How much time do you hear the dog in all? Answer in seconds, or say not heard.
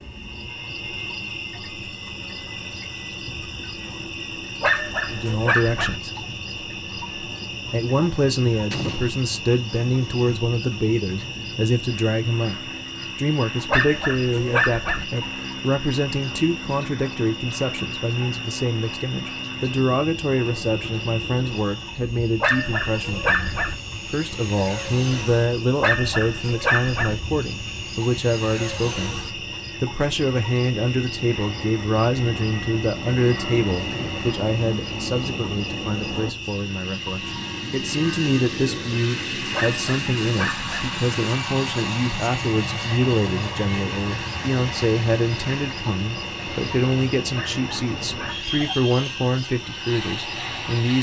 8 s.